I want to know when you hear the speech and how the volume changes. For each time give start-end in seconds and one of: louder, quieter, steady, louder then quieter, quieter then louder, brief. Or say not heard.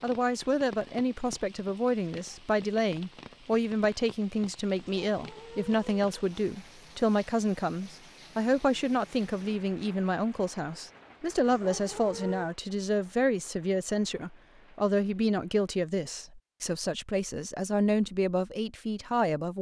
0.0-19.5 steady.